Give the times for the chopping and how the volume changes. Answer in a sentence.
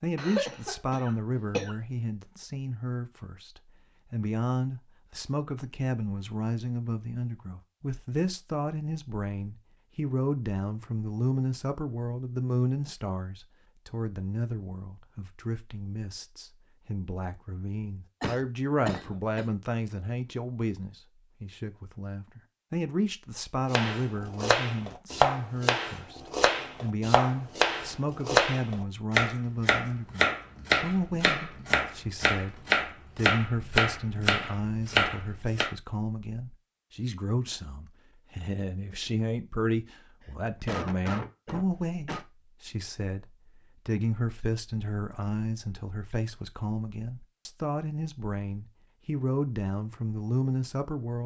The chopping can be heard from 23.7 to 35.7 s, at a steady volume.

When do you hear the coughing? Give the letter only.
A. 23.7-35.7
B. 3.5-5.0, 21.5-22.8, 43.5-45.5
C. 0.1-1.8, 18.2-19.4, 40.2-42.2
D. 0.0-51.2
C.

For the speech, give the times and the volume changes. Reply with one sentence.
You can hear the speech from 0.0 to 51.2 s, at a steady volume.